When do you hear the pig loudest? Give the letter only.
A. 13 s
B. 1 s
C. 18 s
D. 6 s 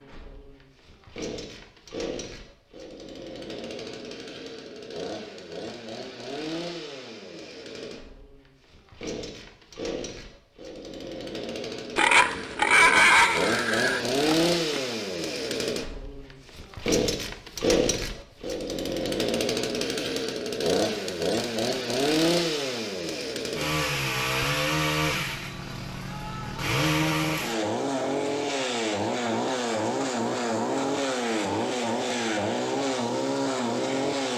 A.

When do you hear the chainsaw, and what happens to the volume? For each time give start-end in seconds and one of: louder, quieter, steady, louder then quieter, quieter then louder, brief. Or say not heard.
0.0-34.3 louder.